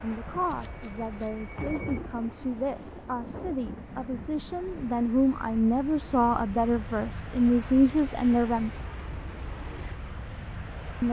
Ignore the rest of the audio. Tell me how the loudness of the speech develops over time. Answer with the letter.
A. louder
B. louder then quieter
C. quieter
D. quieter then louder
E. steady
A.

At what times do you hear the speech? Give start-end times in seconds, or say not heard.
0.0-8.7.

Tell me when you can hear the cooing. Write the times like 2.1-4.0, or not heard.
not heard.